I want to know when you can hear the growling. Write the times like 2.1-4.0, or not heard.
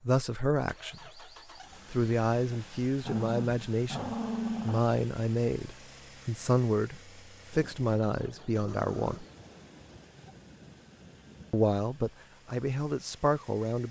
3.0-4.8, 8.6-9.2.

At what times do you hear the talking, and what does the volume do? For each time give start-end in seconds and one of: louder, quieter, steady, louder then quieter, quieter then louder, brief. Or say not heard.
0.1-1.2 brief
1.9-9.2 steady
11.5-13.8 brief.